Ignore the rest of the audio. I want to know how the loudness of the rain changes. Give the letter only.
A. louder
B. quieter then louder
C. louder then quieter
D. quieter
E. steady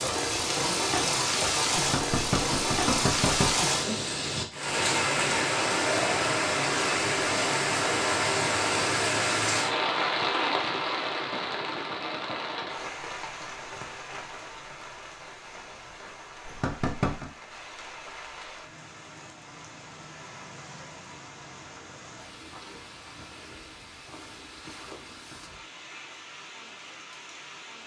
D.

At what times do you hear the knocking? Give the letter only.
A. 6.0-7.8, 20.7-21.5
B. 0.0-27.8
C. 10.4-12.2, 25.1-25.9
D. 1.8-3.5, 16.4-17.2
D.